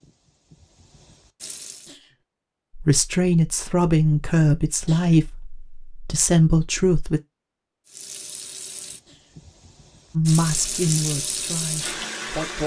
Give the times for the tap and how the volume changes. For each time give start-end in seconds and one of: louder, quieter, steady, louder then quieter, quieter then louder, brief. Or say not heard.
0.0-1.9 brief
7.8-12.6 quieter then louder.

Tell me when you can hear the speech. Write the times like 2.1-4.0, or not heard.
2.8-7.2, 10.2-12.6.